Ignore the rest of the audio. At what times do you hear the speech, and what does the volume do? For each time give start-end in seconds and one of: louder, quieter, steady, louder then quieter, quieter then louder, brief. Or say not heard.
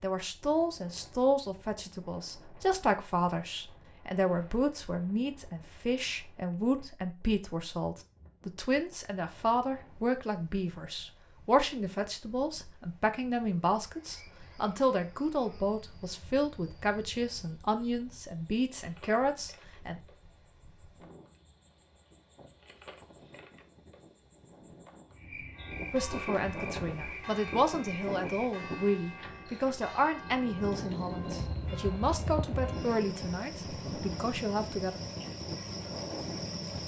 0.0-20.0 steady
25.9-35.0 steady.